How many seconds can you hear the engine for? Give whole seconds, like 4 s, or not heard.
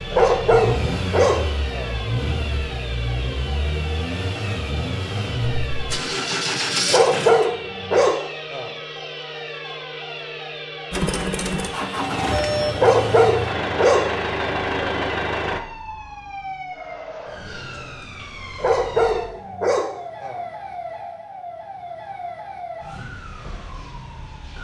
12 s.